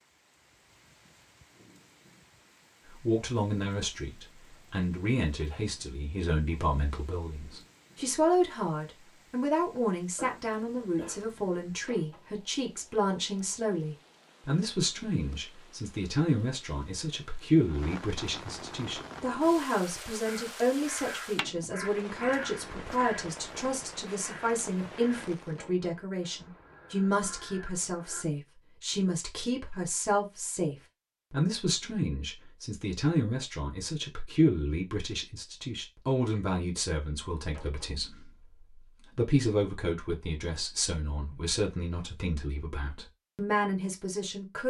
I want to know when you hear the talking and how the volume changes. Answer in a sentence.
You can hear the talking from 2.9 to 44.6 s, at a steady volume.